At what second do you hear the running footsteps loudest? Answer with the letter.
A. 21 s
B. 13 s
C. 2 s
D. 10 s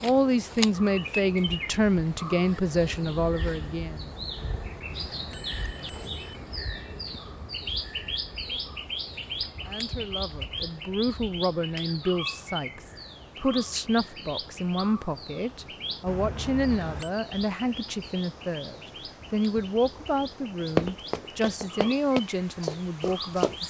A.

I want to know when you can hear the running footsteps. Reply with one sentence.
The running footsteps can be heard from 20.8 to 23.6 s.